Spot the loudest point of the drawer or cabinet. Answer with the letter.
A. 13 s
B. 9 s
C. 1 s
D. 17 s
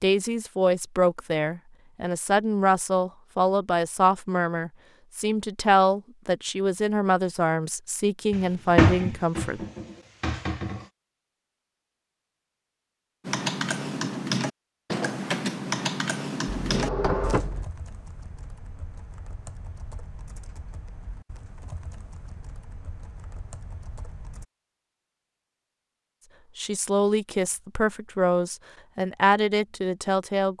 B.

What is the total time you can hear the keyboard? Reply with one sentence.
The keyboard can be heard for 11 seconds in total.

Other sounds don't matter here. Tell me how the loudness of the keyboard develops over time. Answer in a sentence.
The loudness of the keyboard goes down.